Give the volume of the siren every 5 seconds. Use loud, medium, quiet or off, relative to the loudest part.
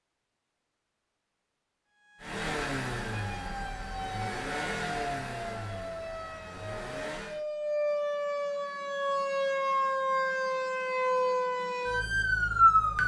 quiet, medium, loud.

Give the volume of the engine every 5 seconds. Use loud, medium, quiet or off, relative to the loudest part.
loud, medium, off.